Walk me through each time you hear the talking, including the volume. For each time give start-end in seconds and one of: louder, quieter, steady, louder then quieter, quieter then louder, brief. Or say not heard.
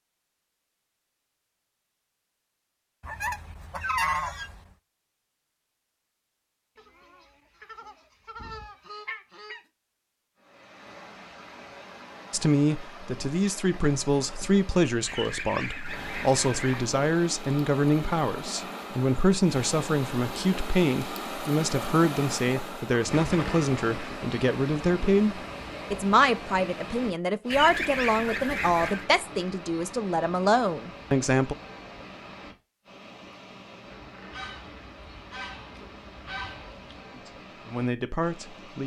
12.3-31.6 steady
37.1-38.8 brief.